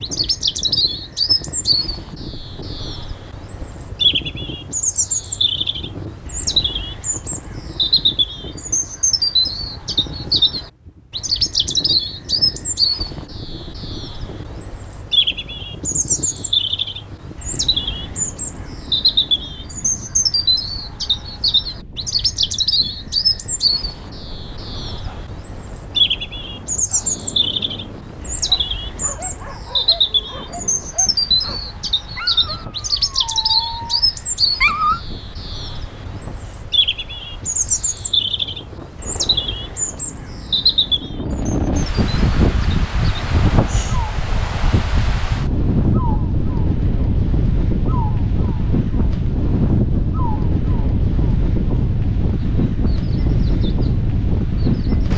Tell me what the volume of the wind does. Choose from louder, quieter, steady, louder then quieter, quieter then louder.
louder.